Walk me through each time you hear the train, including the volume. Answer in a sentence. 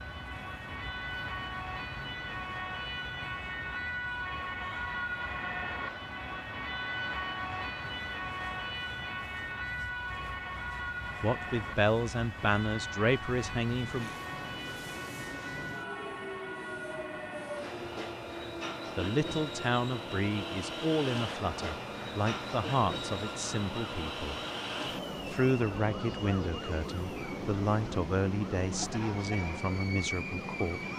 You can hear the train from 0.0 to 30.9 s, getting louder.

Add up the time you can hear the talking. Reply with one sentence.
You can hear the talking for 14 seconds altogether.